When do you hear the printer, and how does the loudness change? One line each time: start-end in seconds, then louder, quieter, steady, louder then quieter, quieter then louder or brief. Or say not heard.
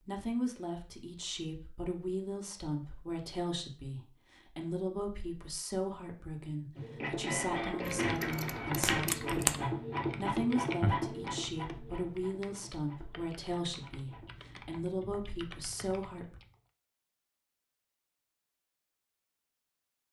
6.8-14.6 quieter.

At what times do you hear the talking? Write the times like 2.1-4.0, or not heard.
0.0-16.4.